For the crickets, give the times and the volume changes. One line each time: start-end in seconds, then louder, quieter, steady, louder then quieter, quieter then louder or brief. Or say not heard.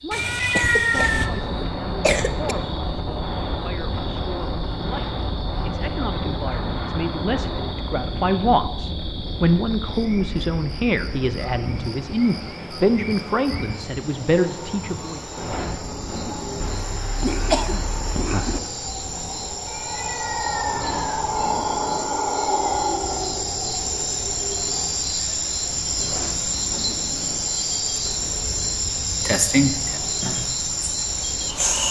0.0-31.8 louder.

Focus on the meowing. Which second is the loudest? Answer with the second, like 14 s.
1 s.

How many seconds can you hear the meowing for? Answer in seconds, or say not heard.
3 s.